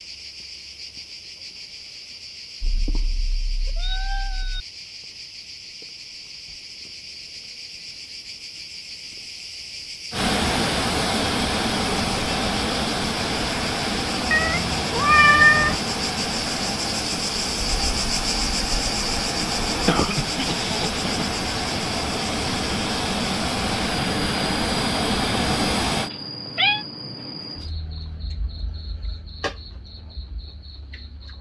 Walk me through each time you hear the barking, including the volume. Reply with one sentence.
You can't hear the barking here.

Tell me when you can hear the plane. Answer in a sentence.
The plane can be heard from 10.1 to 26.1 s.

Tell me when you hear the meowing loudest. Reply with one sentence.
The volume of the meowing peaks at 15 seconds.